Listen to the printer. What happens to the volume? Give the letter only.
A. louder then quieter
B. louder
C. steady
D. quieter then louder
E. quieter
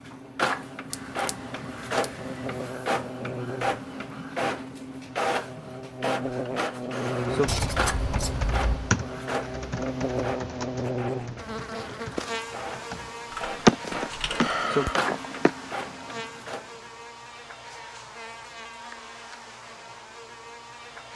D.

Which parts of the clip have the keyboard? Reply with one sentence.
You can hear the keyboard from 7.2 to 14.6 s.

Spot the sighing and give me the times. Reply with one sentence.
You can hear the sighing from 13.7 to 15.5 s.